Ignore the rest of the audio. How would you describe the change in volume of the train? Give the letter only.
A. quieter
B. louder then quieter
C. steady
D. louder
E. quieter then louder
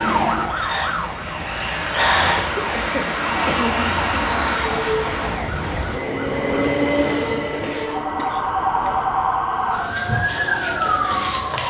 B.